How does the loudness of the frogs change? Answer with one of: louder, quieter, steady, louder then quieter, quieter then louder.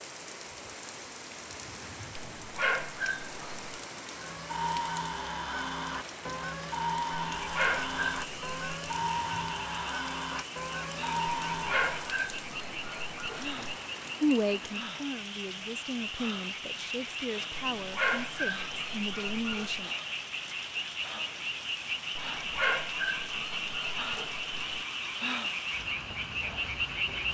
louder.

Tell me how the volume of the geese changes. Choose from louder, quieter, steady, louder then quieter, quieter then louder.
steady.